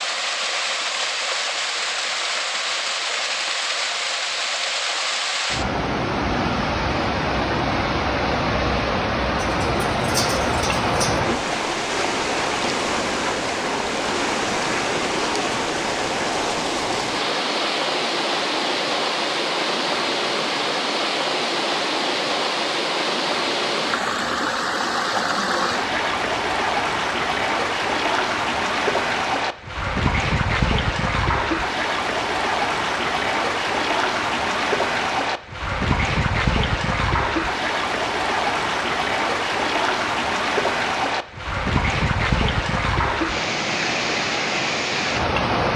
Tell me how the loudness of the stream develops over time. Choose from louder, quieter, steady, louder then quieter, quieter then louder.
steady.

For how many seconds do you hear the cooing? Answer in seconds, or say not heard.
2 s.